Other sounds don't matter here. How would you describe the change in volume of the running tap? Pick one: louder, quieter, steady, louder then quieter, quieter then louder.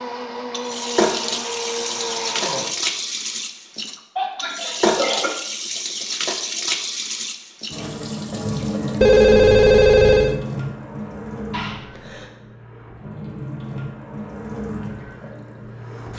quieter.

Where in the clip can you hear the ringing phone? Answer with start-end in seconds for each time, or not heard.
9.0-10.4.